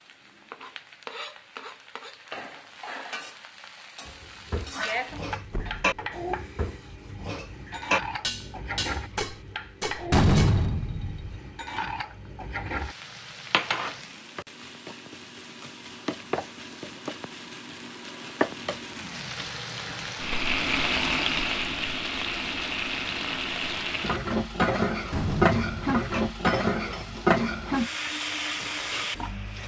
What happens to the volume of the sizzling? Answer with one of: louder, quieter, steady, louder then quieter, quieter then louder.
louder.